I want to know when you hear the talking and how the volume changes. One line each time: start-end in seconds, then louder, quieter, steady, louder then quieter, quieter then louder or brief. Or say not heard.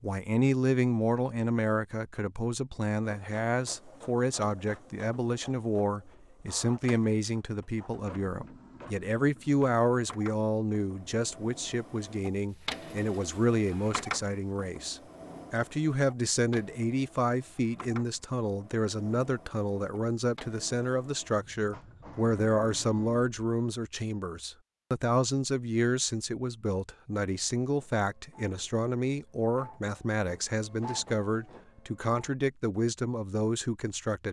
0.0-34.2 steady.